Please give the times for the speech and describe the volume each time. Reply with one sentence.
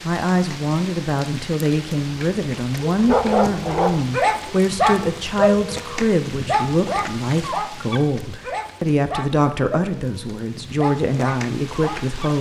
The speech can be heard from 0.0 to 12.3 s, at a steady volume.